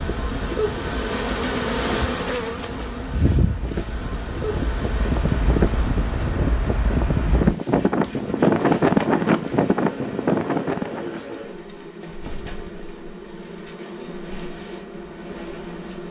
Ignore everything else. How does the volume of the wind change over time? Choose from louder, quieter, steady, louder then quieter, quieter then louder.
louder.